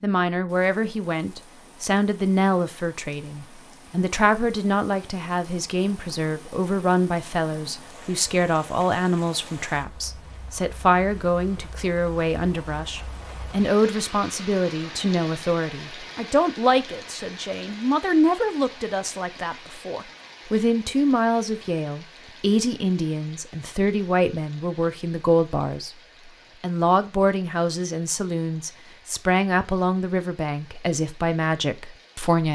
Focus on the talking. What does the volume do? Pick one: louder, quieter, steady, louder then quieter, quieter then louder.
steady.